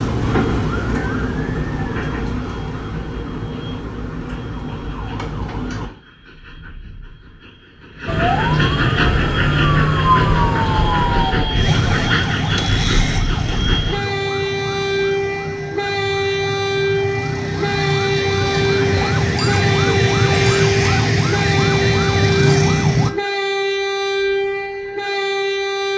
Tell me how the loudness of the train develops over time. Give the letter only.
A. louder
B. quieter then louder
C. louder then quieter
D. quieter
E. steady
A.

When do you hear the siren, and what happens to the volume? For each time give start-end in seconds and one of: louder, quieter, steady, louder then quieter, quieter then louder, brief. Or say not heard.
0.0-5.9 quieter
8.1-23.1 quieter then louder.